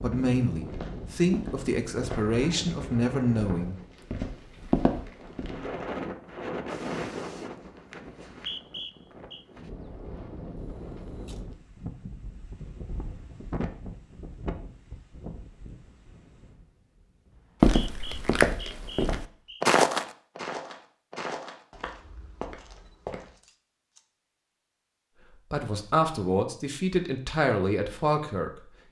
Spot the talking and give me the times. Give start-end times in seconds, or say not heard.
0.0-3.8, 25.5-28.8.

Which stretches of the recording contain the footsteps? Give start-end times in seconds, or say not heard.
0.1-5.8, 17.6-23.4.